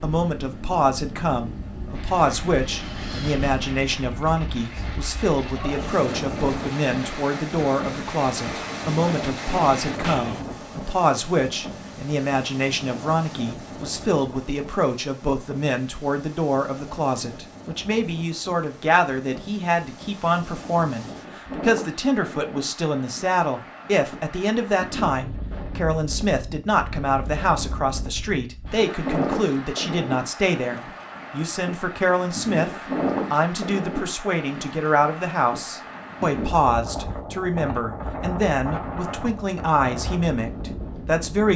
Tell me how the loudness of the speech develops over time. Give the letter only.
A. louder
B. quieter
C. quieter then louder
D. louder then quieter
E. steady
E.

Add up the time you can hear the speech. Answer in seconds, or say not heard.
41 s.